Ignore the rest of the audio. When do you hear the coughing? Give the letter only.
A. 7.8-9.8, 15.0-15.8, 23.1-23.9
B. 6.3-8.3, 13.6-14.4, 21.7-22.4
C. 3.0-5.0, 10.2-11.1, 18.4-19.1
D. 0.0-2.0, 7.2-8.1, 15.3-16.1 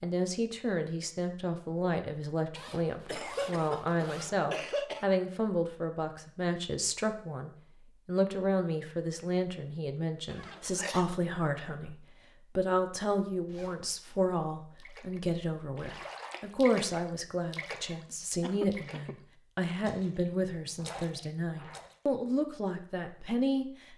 C.